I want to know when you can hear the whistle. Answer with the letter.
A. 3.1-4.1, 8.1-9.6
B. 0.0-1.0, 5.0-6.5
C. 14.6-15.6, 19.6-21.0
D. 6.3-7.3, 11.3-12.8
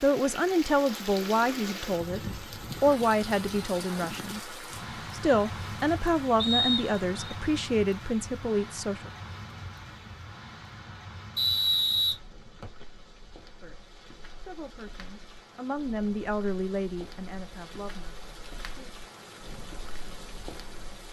D.